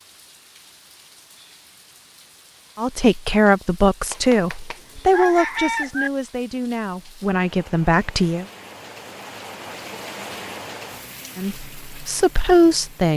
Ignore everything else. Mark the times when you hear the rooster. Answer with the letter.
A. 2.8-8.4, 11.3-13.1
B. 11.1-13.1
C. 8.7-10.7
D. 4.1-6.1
D.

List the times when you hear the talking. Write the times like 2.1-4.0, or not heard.
2.8-8.4, 11.3-13.1.